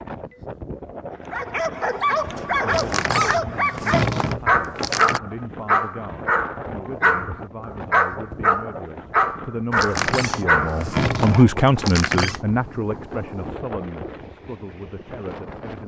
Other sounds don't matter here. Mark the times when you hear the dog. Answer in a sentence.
You can hear the dog from 1.3 to 11.5 s.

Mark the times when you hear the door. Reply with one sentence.
You can hear the door from 2.6 to 5.2 s and from 9.7 to 12.4 s.